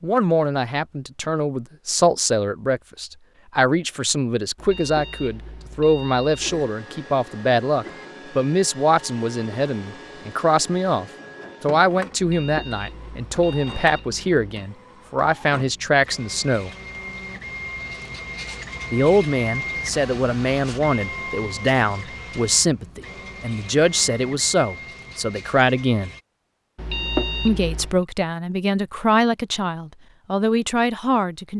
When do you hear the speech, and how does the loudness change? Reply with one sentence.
You can hear the speech from 0.0 to 16.7 s, at a steady volume; from 18.9 to 26.1 s, at a steady volume; and from 27.4 to 31.5 s, at a steady volume.